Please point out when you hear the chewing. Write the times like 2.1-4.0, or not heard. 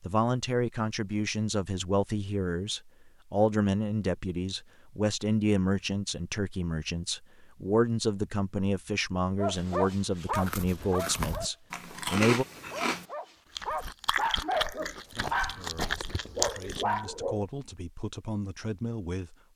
10.3-17.0.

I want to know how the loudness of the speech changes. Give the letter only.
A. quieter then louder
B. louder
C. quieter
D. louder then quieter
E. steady
C.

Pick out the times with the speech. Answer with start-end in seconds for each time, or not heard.
0.0-12.4, 14.8-19.4.